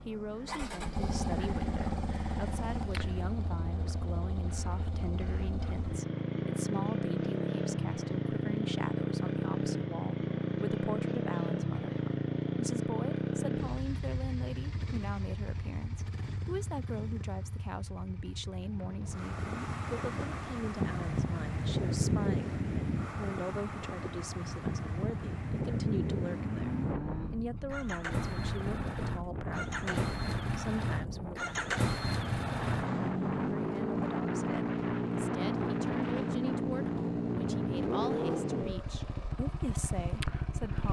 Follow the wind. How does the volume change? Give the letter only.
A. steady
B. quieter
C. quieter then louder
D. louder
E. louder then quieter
B.